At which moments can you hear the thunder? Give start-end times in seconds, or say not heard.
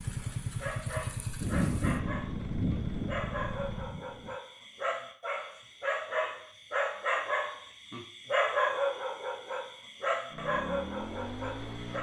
1.4-4.3.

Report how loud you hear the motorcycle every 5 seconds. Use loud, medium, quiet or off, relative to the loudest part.
loud, off, loud.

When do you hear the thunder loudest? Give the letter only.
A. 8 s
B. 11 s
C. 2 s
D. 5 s
C.